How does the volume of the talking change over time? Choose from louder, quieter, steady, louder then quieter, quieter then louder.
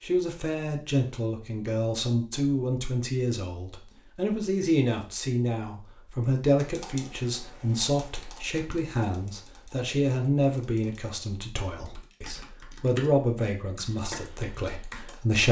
steady.